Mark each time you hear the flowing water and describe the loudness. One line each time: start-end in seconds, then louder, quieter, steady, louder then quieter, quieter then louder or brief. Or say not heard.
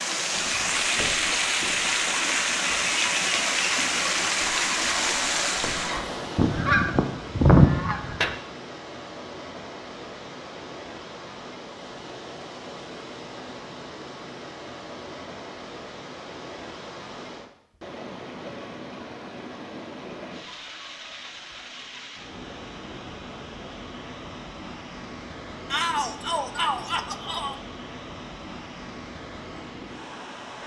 0.0-30.6 quieter.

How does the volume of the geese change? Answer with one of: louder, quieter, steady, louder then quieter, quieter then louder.
louder.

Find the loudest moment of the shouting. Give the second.
26 s.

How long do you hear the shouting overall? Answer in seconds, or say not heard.
2 s.